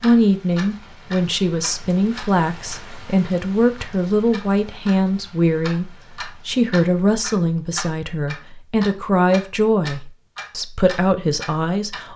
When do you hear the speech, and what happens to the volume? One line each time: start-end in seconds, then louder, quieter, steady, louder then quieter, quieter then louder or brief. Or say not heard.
0.0-12.1 steady.